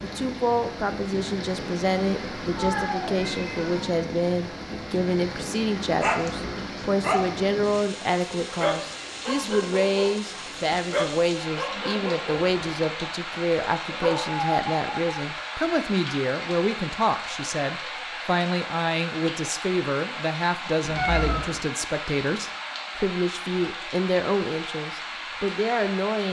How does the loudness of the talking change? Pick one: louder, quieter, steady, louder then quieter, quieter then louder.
steady.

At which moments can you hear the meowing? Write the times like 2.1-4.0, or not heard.
2.5-3.7, 12.4-12.8, 20.8-21.6.